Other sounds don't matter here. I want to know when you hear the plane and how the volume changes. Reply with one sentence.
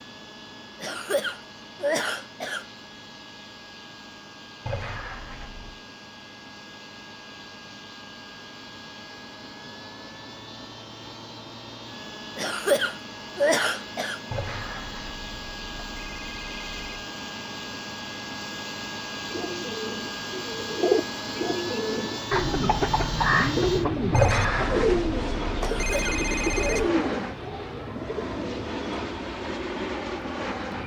You can hear the plane from 0.0 to 30.8 s, getting louder.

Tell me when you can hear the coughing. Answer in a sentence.
The coughing can be heard from 0.8 to 2.6 s, from 12.3 to 14.2 s and from 25.6 to 26.9 s.